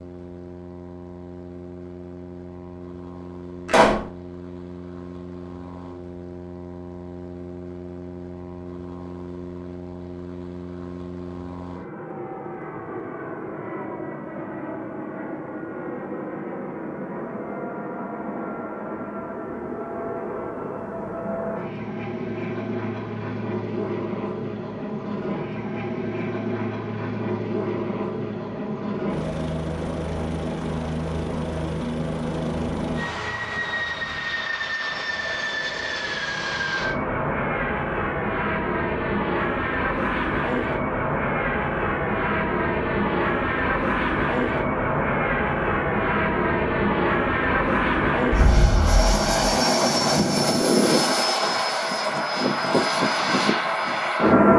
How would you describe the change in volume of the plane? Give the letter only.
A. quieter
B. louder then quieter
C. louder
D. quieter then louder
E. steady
C.